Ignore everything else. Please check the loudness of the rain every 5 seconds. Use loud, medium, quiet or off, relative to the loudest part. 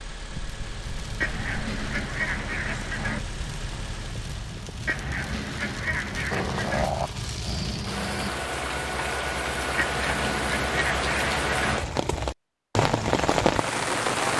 quiet, medium, loud.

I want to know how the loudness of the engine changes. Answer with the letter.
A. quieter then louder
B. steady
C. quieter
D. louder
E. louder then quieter
B.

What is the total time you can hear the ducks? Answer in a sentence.
You can hear the ducks for 6 seconds altogether.